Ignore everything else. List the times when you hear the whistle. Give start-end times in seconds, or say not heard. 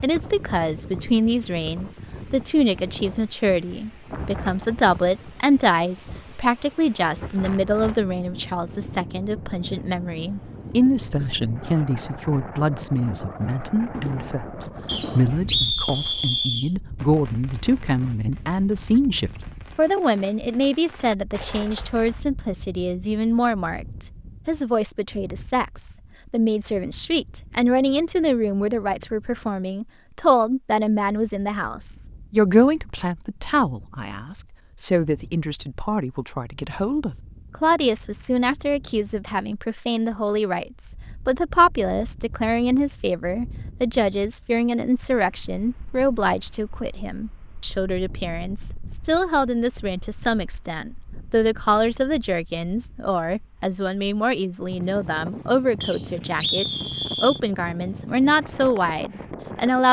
14.8-16.7, 55.8-57.4.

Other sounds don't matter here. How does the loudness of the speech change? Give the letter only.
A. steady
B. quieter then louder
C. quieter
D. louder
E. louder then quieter
A.